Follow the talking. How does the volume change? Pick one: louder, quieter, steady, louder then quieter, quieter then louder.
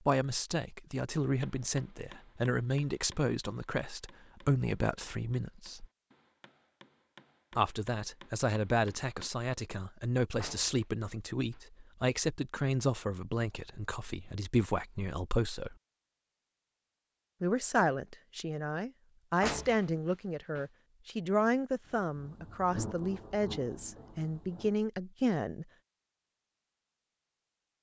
steady.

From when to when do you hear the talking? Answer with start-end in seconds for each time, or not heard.
0.1-5.8, 7.5-15.8, 17.4-25.6.